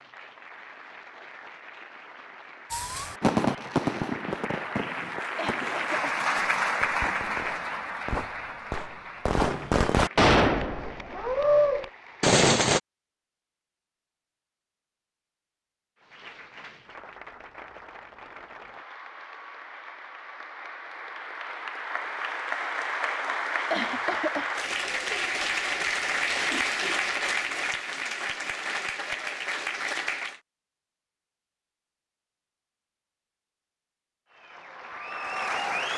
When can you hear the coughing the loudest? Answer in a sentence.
The volume of the coughing peaks at 24 seconds.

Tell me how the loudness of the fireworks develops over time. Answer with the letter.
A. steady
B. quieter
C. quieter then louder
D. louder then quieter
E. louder
C.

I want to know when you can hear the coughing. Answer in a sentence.
You can hear the coughing from 5.3 to 6.2 s and from 23.7 to 24.5 s.